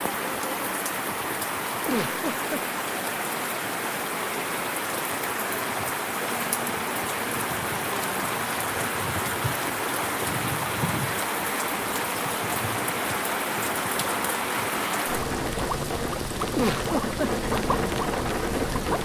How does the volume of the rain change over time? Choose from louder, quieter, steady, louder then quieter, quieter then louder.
steady.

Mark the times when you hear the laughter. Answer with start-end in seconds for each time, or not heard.
1.9-2.6, 16.5-17.4.